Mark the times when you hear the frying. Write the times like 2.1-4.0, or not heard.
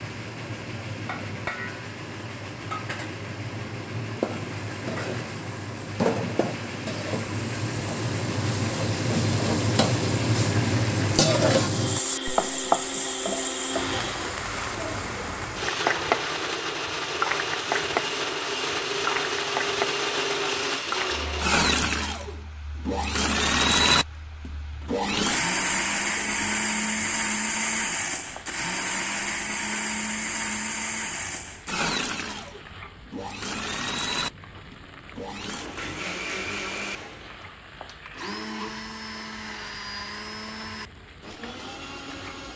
0.0-42.5.